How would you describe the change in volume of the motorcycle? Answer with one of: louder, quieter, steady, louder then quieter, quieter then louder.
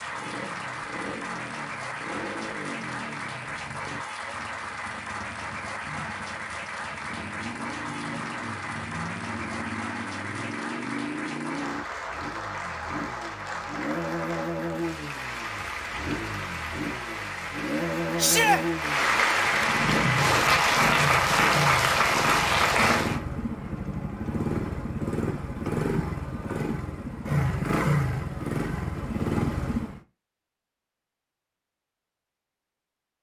louder.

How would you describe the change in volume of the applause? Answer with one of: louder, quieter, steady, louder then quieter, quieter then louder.
louder.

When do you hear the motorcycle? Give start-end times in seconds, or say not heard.
0.0-30.0.